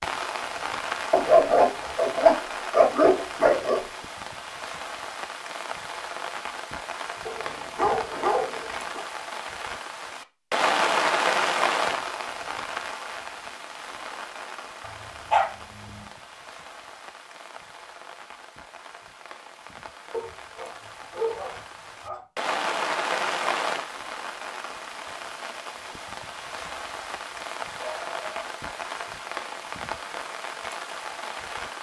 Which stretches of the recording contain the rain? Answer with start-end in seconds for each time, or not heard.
0.0-31.7.